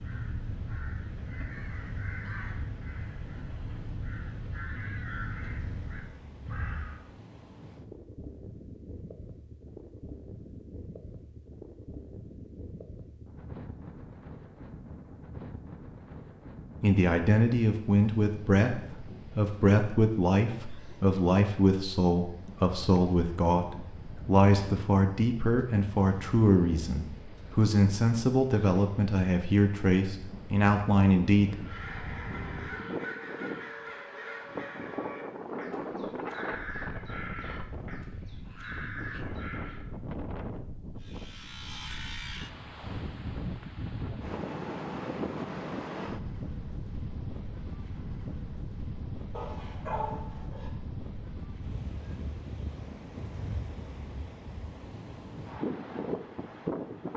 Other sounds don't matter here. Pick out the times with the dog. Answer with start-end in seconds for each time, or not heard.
49.3-50.7.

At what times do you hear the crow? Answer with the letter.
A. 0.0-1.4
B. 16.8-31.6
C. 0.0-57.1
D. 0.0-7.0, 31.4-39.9
D.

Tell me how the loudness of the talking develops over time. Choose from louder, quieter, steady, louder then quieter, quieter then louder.
steady.